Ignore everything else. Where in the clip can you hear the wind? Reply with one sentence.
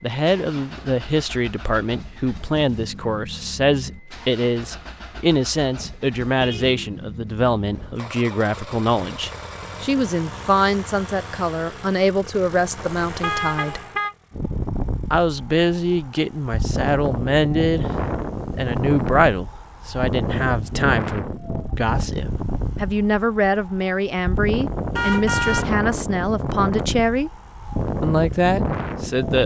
The wind can be heard from 14.3 to 29.4 s.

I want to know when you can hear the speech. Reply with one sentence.
You can hear the speech from 0.0 to 13.8 s, from 15.1 to 17.9 s, from 18.5 to 27.3 s and from 28.0 to 29.4 s.